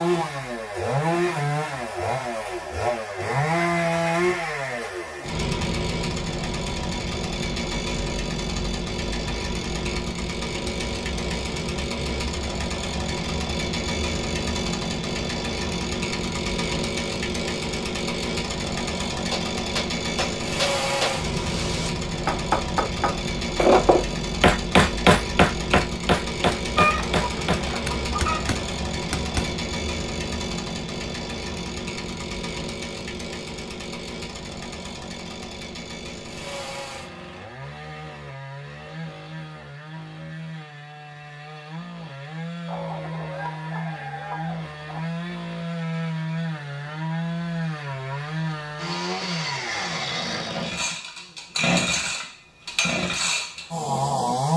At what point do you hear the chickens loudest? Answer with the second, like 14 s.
27 s.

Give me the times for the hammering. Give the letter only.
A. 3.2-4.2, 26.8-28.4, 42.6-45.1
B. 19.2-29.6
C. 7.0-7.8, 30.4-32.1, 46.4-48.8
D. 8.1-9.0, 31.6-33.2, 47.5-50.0
B.